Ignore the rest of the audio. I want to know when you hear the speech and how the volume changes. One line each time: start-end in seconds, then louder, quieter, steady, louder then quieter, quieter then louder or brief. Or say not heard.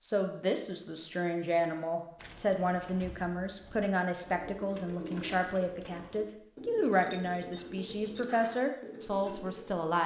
0.0-10.0 steady.